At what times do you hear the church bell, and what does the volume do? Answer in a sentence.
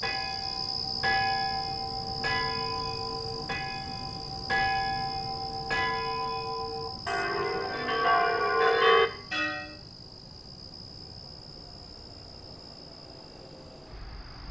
You can hear the church bell from 0.0 to 9.7 s, getting louder.